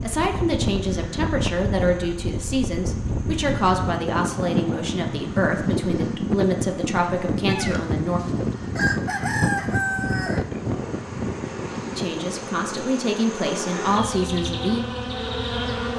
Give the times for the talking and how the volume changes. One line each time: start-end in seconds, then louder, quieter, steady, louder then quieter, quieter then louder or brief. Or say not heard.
0.0-8.2 steady
11.9-14.8 brief.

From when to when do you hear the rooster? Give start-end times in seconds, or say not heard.
7.5-10.7.